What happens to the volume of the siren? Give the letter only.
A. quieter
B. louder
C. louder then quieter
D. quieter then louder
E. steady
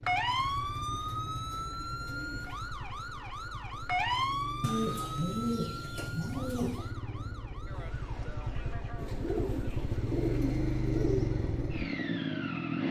A.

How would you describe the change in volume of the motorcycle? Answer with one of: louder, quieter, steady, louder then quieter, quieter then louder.
louder.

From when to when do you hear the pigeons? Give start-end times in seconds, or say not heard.
0.3-2.7, 4.6-6.9, 8.9-11.3.